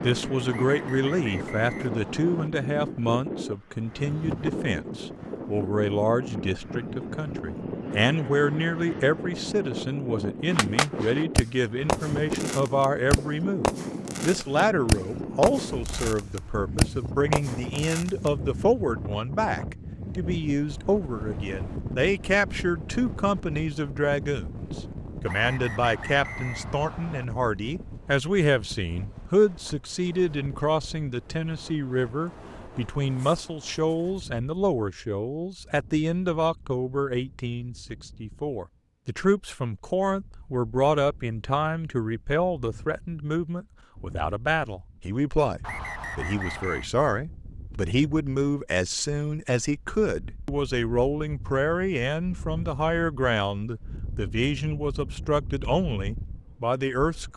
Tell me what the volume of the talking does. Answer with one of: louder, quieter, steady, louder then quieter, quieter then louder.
steady.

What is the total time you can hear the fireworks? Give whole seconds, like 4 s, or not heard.
8 s.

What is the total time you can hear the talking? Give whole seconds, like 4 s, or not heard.
57 s.